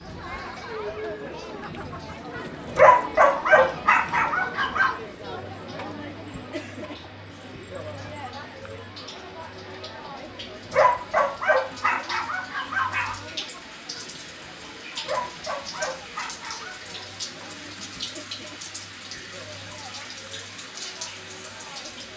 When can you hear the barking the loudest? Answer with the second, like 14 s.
3 s.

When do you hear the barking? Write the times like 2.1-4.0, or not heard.
2.6-4.9, 10.7-13.2, 14.9-16.8.